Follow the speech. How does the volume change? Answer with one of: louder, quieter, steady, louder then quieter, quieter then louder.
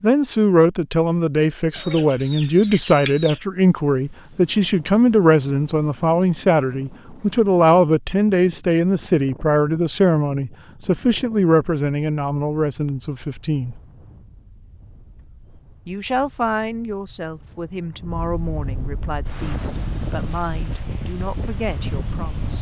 quieter.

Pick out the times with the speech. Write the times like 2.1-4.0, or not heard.
0.0-13.8, 15.8-22.5.